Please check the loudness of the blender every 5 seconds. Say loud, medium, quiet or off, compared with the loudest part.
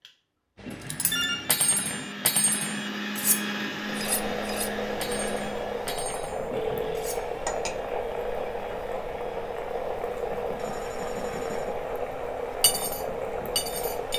loud, medium, quiet.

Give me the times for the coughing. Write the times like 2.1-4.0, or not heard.
not heard.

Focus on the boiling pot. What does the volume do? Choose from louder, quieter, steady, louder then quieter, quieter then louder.
steady.